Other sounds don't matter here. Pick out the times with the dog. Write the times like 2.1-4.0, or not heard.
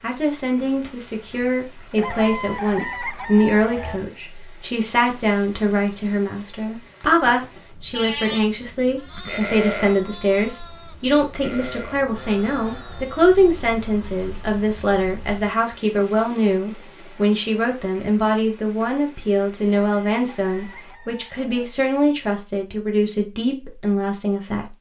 not heard.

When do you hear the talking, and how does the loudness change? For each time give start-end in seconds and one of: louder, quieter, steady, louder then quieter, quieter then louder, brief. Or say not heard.
0.0-24.6 steady.